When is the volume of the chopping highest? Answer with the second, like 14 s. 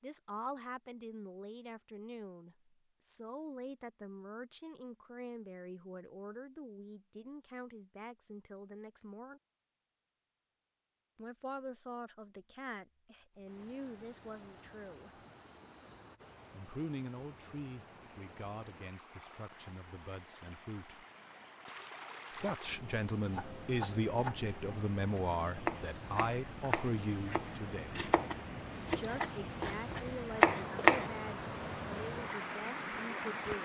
31 s.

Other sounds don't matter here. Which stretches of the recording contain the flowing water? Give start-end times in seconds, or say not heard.
13.3-33.6.